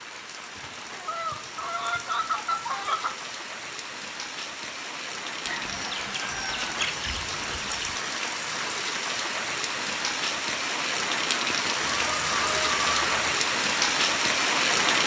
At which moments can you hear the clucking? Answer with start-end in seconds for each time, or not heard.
0.6-3.3, 5.5-8.1, 11.8-13.3.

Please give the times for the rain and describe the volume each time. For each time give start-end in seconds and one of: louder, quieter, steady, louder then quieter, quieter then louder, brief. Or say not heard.
0.0-15.0 louder.